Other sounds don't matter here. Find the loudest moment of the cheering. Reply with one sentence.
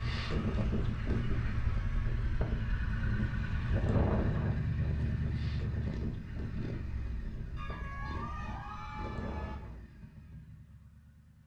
The loudest moment of the cheering is at 8 seconds.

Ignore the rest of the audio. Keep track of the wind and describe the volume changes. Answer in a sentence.
The volume of the wind goes down.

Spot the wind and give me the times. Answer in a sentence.
The wind can be heard from 0.0 to 9.8 s.